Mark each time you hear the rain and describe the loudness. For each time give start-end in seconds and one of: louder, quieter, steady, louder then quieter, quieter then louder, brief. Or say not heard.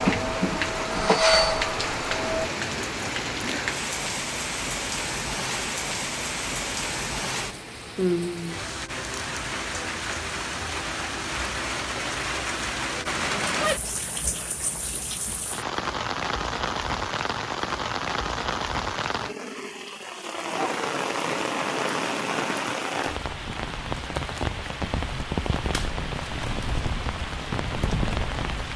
0.0-28.7 steady.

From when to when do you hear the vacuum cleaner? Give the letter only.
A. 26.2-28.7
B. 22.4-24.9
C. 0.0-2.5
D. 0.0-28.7
C.